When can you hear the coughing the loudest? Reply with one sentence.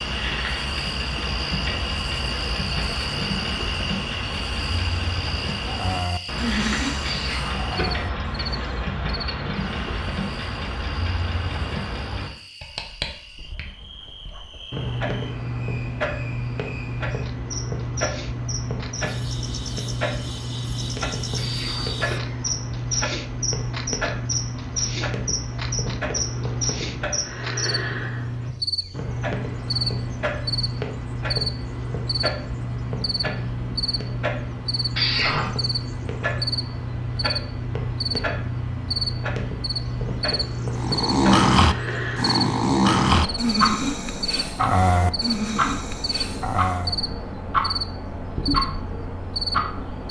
The volume of the coughing peaks at 35 seconds.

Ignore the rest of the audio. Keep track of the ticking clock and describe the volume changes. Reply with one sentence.
The volume of the ticking clock stays about the same.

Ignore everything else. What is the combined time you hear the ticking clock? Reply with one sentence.
The ticking clock can be heard for 50 seconds in total.